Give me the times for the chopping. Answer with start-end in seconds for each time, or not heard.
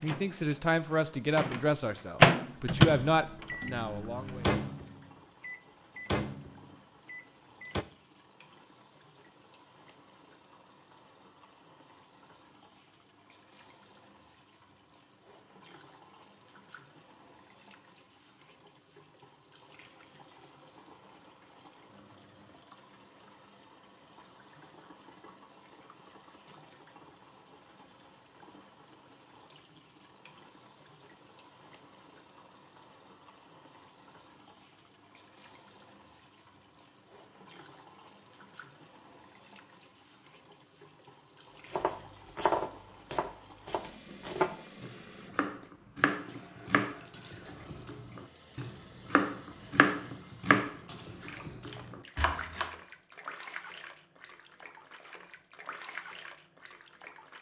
41.7-52.7.